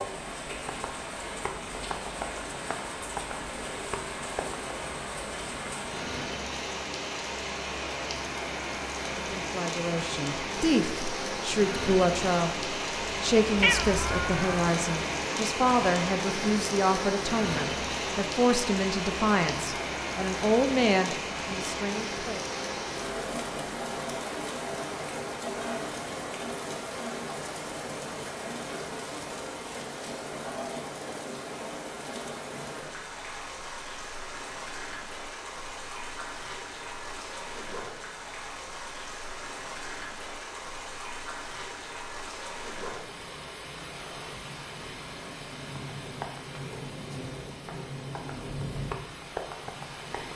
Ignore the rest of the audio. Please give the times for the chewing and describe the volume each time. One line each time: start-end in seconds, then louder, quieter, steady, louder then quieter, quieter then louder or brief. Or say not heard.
not heard.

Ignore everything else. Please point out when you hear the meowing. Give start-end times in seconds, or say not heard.
13.6-14.6.